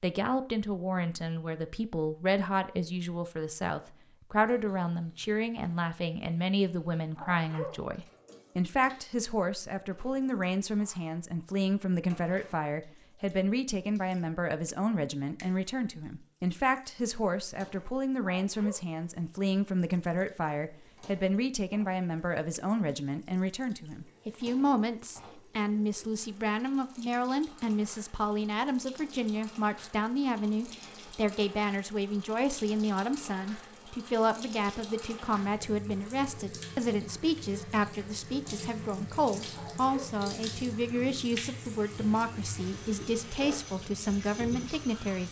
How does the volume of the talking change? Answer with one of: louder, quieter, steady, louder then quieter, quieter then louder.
steady.